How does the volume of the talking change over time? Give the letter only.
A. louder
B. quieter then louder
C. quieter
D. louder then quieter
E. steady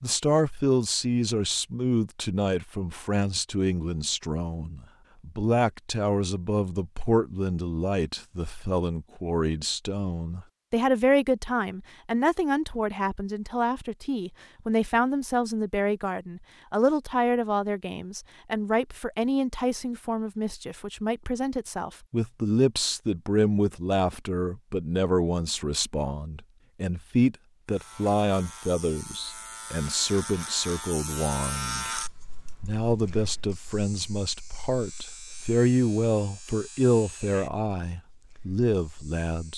E.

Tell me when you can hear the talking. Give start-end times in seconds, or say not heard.
0.0-31.9, 32.6-39.5.